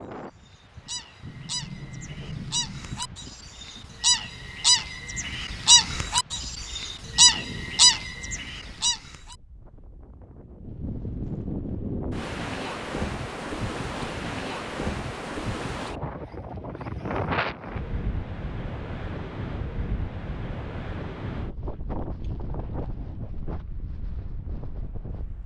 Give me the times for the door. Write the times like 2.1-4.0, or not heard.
1.2-3.2.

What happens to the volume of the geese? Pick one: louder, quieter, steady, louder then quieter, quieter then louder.
louder.